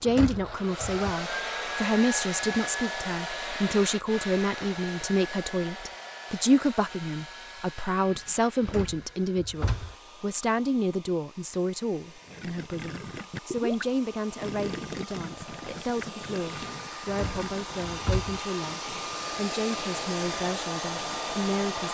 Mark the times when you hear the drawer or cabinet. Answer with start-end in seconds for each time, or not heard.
0.1-1.1, 8.6-9.9, 17.1-18.4.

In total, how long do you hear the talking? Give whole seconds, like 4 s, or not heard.
22 s.